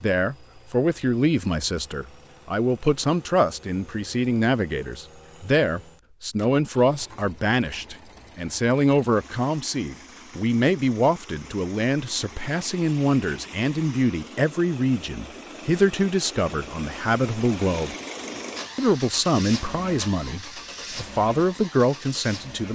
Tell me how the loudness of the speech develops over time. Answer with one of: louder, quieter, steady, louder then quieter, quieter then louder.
steady.